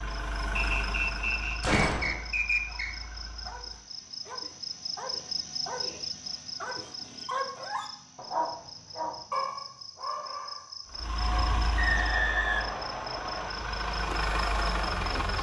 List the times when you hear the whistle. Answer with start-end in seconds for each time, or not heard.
0.6-3.0, 11.8-13.5.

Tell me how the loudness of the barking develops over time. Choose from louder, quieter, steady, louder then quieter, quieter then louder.
louder.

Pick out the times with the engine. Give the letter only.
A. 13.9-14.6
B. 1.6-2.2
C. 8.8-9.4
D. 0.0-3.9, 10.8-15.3
D.